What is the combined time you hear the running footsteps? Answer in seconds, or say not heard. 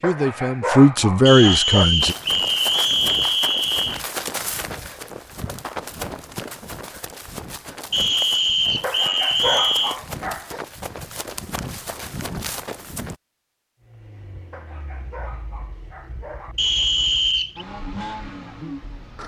11 s.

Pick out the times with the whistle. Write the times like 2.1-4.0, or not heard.
1.2-4.0, 7.9-9.9, 16.6-17.6.